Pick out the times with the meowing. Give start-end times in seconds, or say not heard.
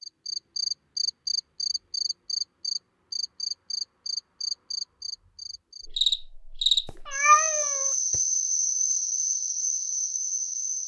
6.8-8.2.